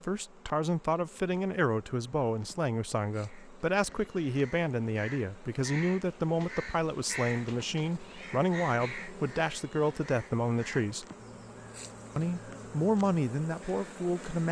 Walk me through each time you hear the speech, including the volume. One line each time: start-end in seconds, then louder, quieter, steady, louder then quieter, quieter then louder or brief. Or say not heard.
0.0-11.1 steady
12.2-14.4 brief.